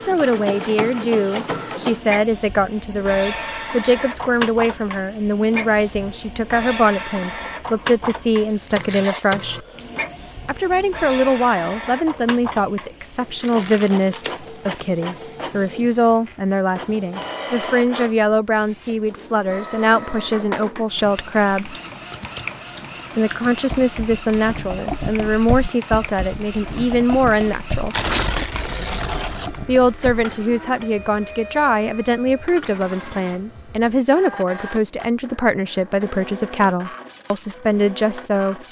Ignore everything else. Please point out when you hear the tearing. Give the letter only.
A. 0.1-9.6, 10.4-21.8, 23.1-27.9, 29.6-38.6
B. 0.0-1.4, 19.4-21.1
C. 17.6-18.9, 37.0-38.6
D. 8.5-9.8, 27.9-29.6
D.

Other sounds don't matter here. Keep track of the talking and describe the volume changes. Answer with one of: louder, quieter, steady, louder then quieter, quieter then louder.
steady.